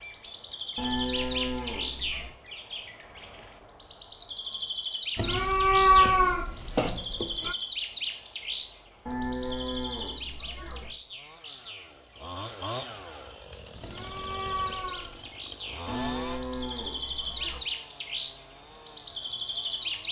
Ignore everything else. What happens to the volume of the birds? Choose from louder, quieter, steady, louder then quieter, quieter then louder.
quieter then louder.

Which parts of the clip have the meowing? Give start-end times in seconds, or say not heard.
5.2-7.5, 13.8-15.3.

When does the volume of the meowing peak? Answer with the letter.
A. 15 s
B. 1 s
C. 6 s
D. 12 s
C.